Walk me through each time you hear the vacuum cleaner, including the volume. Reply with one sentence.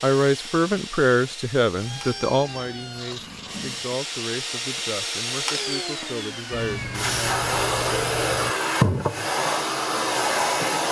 The vacuum cleaner can be heard from 0.0 to 10.8 s, getting louder.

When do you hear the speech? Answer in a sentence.
You can hear the speech from 0.0 to 7.4 s.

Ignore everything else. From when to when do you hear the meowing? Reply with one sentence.
You can hear the meowing from 1.8 to 3.9 s and from 6.5 to 8.6 s.